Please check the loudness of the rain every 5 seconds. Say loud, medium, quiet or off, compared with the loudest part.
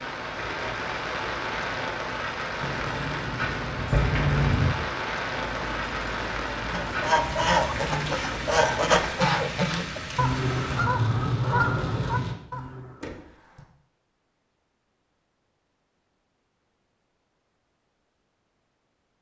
loud, loud, loud, off.